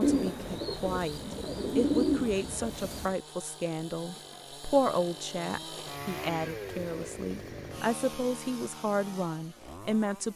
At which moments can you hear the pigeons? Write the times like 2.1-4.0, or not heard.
0.0-3.1.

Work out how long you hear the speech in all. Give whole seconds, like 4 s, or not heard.
10 s.